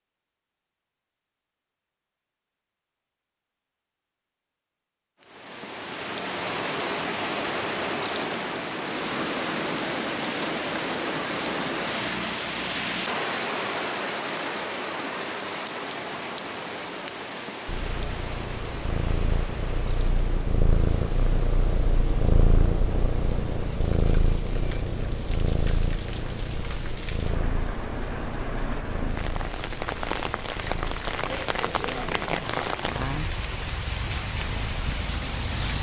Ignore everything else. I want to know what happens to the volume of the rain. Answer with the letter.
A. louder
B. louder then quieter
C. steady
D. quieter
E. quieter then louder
E.